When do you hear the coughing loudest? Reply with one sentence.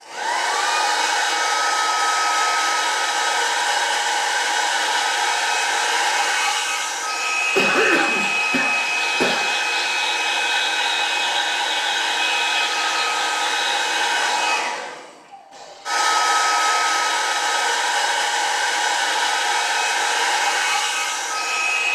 The loudest moment of the coughing is at 8 seconds.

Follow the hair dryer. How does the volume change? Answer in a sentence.
The loudness of the hair dryer stays about the same.